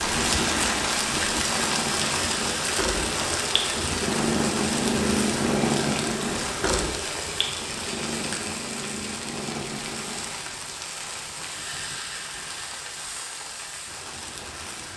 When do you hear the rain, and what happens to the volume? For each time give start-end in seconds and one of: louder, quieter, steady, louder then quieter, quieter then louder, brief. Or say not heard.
0.0-14.9 quieter.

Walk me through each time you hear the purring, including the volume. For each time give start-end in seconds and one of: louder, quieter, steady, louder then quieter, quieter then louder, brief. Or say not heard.
0.0-10.6 louder then quieter.